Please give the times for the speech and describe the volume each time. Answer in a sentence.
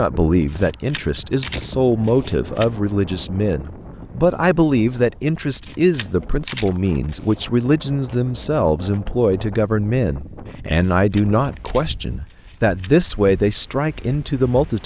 The speech can be heard from 0.0 to 14.8 s, at a steady volume.